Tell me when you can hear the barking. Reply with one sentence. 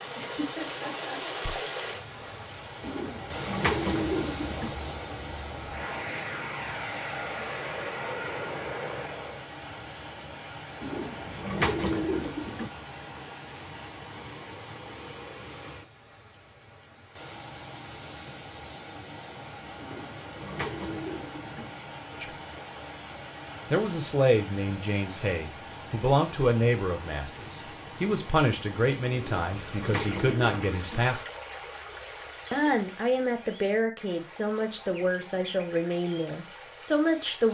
The barking can't be heard in this clip.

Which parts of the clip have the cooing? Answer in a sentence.
You can hear the cooing from 2.8 to 4.7 s, from 10.8 to 12.7 s, from 19.8 to 21.6 s and from 29.1 to 31.0 s.